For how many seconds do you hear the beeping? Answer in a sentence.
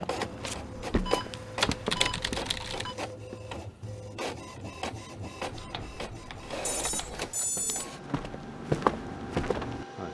The beeping can be heard for 3 seconds in total.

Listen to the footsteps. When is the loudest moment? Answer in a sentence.
The loudest moment of the footsteps is at 9 seconds.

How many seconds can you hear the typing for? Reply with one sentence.
The typing can be heard for 4 seconds in total.